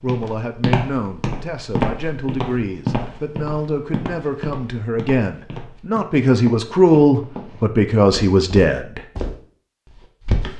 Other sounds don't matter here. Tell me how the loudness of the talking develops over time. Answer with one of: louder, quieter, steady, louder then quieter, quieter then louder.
louder.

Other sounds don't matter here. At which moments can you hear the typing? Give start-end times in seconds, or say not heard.
not heard.